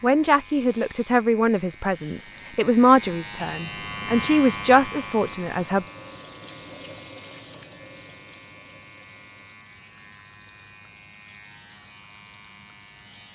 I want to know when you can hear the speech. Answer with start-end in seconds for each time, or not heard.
0.0-5.8.